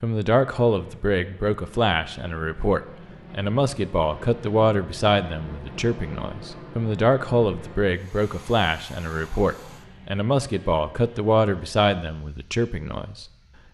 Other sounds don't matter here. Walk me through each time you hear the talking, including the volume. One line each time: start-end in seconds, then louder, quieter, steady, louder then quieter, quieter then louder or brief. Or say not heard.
0.0-13.2 steady.